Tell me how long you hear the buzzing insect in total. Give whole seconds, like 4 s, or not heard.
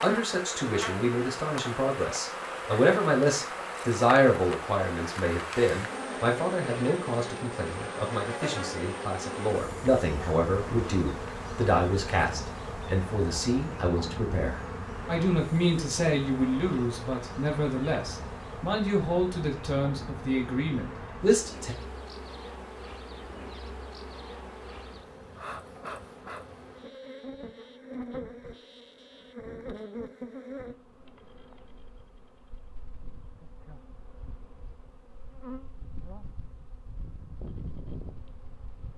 39 s.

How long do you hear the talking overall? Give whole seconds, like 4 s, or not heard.
22 s.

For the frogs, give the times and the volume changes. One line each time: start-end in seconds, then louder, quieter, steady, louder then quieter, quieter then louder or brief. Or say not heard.
not heard.